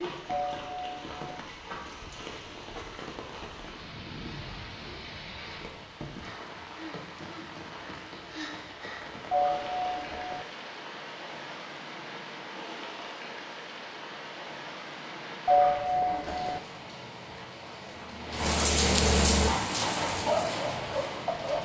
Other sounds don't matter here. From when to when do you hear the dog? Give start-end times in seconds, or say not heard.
19.4-21.6.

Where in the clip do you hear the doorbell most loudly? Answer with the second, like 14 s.
16 s.